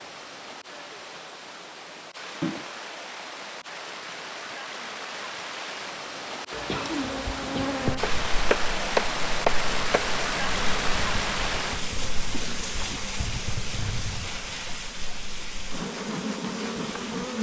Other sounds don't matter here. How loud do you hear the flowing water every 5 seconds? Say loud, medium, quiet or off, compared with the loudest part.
medium, loud, loud, medium.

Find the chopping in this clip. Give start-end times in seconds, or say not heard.
8.0-10.0.